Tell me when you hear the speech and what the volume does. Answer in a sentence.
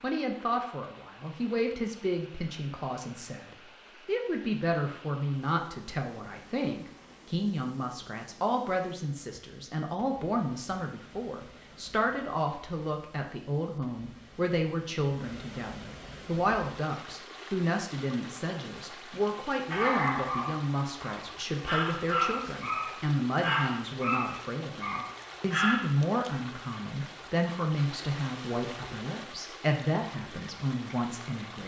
You can hear the speech from 0.0 to 31.6 s, at a steady volume.